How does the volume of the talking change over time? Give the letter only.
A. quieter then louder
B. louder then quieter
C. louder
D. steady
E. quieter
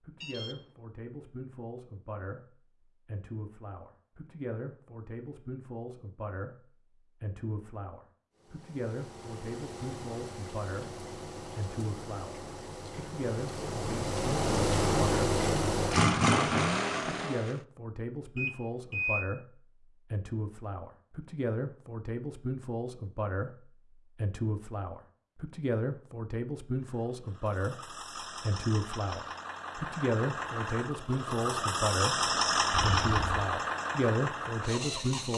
C.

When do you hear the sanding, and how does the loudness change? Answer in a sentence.
You can't hear the sanding here.